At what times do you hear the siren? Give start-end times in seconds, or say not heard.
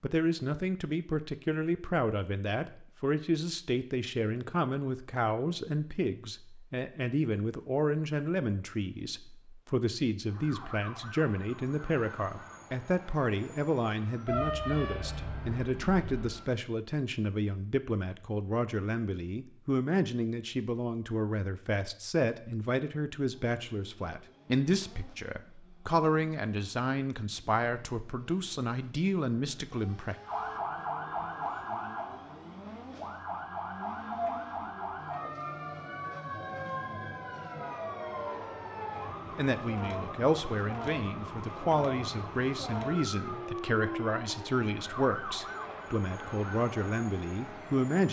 10.2-16.5, 30.2-48.0.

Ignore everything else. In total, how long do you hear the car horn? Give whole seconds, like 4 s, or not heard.
2 s.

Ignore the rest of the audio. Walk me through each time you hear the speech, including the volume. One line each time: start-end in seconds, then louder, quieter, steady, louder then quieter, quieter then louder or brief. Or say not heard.
0.0-30.1 steady
39.4-48.0 steady.